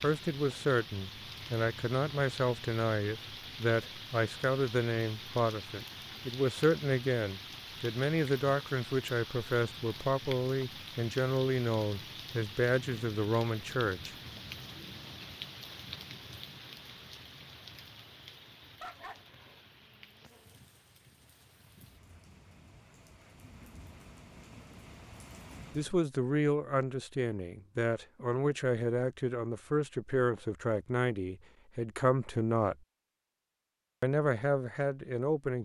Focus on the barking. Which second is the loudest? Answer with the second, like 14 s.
19 s.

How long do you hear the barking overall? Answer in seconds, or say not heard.
2 s.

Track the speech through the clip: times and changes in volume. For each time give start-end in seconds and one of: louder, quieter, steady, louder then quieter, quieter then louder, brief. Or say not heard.
0.0-14.2 steady
25.8-32.8 steady
34.0-35.6 brief.